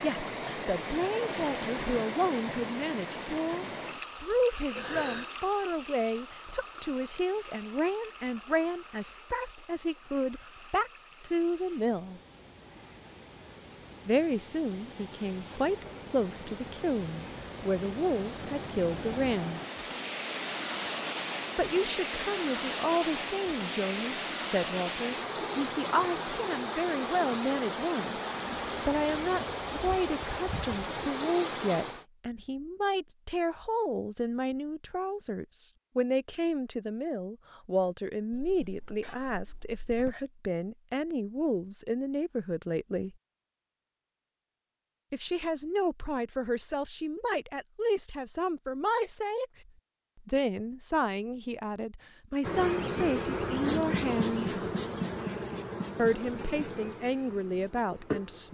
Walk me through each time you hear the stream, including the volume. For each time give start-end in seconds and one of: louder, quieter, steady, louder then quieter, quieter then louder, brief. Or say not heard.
0.0-32.0 quieter then louder.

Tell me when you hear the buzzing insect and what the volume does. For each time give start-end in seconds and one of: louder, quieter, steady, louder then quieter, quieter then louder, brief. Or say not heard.
52.4-58.4 quieter.